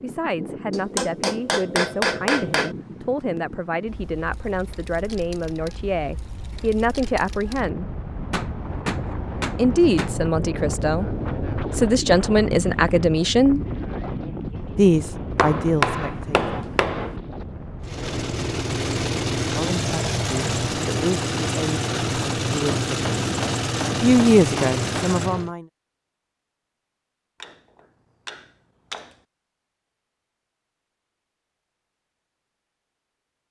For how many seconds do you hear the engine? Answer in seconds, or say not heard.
8 s.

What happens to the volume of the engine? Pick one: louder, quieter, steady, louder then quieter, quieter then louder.
steady.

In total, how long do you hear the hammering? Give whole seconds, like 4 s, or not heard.
10 s.